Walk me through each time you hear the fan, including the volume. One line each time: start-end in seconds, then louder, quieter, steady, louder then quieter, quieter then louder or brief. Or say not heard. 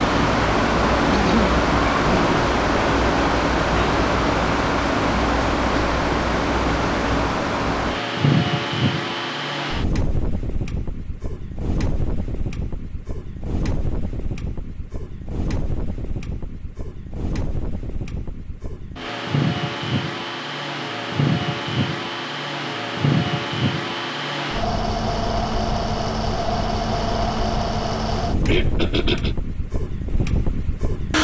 0.0-31.1 quieter then louder.